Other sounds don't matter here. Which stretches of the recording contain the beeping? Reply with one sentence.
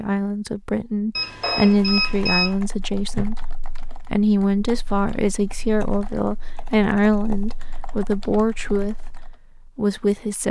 You can hear the beeping from 1.1 to 2.5 s.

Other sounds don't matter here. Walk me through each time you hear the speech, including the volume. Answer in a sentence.
You can hear the speech from 0.0 to 10.4 s, at a steady volume.